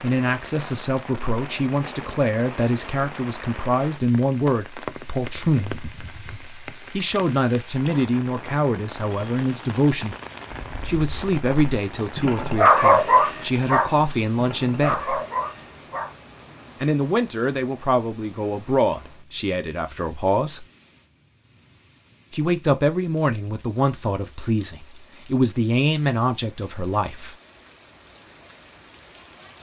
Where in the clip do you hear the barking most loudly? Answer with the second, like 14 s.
13 s.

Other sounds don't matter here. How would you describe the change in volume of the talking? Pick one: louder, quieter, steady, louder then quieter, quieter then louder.
steady.